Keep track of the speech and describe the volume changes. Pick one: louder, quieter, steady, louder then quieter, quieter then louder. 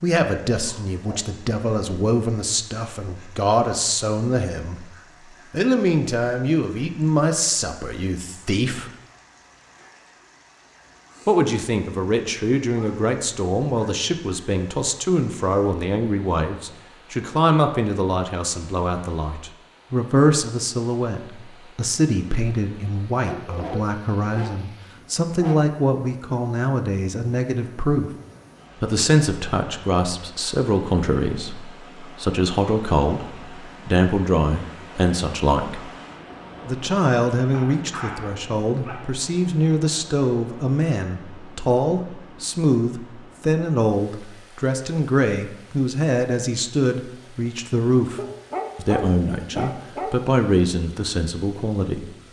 steady.